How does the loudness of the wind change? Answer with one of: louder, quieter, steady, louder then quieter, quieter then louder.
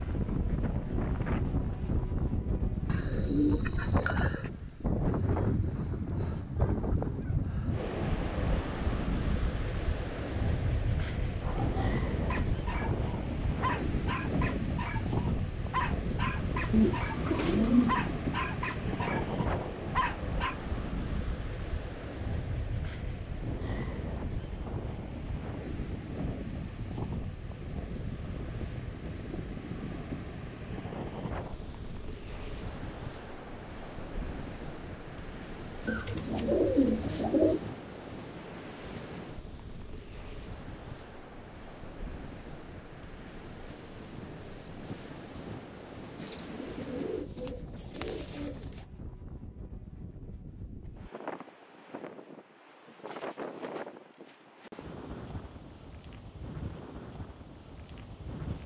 quieter.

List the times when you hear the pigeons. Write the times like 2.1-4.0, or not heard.
2.9-4.5, 16.7-17.9, 35.9-37.6, 46.1-48.8.